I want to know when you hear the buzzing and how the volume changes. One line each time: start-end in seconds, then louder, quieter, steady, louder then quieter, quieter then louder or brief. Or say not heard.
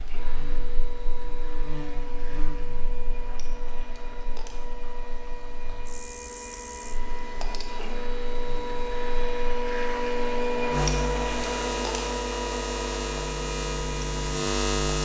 0.0-15.0 quieter then louder.